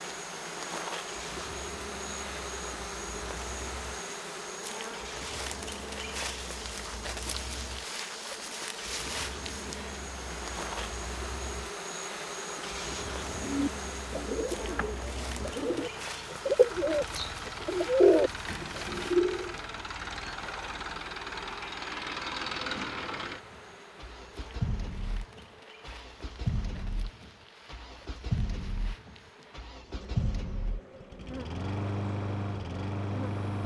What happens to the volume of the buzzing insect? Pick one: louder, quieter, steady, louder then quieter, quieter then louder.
quieter.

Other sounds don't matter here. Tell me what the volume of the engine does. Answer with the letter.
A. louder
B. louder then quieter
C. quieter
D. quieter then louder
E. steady
A.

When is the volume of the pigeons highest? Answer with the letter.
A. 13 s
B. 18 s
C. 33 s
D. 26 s
B.